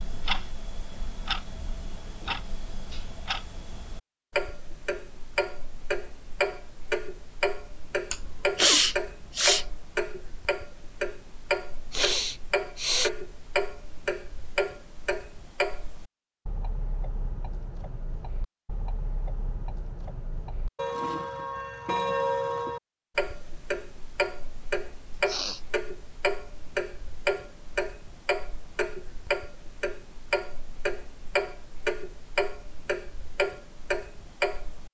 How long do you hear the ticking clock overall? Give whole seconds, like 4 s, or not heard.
35 s.